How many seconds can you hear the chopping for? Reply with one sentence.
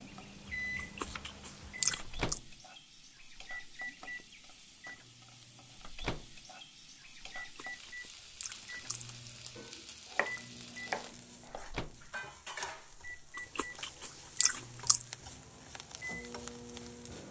The chopping can be heard for 4 seconds in total.